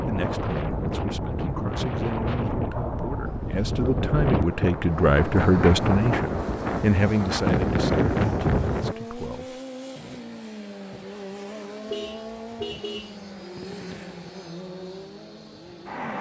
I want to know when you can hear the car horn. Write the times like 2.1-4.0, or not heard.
11.9-13.2.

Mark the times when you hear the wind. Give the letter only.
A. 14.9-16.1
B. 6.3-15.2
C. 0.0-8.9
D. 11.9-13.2
C.